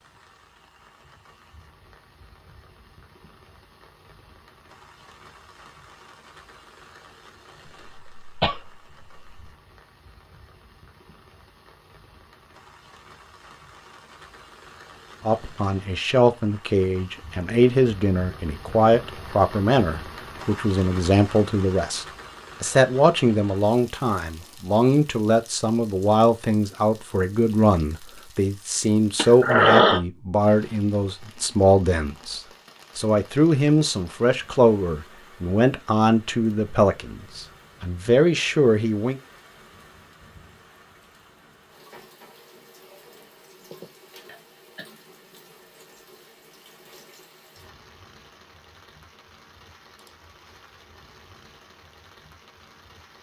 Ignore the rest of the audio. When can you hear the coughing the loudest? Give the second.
30 s.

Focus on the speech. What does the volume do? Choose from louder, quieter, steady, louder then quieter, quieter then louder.
steady.